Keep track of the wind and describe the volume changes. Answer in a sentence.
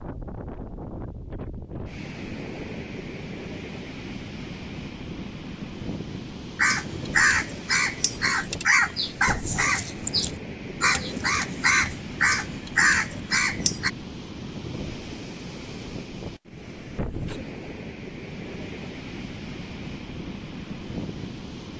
The volume of the wind stays about the same.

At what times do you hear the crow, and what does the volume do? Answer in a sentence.
The crow can be heard from 6.5 to 13.9 s, at a steady volume.